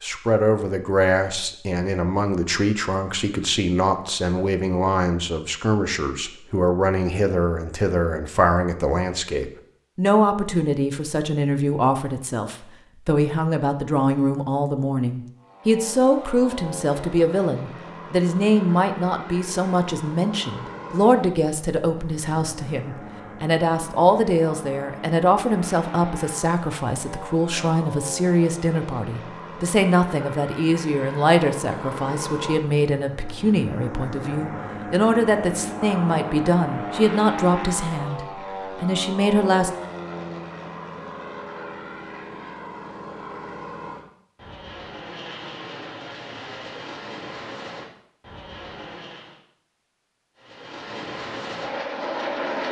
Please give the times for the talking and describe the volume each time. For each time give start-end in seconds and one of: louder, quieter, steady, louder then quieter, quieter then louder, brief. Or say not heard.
0.0-39.7 steady.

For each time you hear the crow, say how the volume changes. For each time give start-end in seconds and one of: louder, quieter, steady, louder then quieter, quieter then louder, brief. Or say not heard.
not heard.